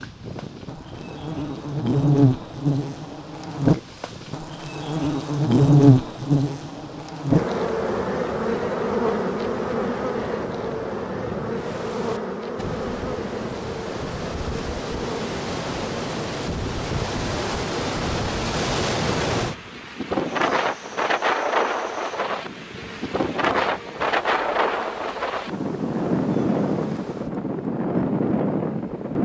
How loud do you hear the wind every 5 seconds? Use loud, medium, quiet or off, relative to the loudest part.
quiet, quiet, medium, loud, loud, loud.